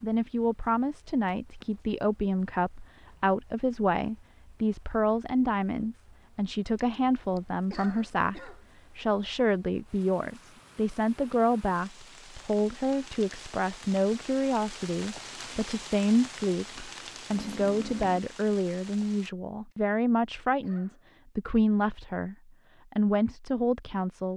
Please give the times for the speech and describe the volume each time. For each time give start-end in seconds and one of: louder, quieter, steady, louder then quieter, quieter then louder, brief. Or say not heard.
0.0-24.3 steady.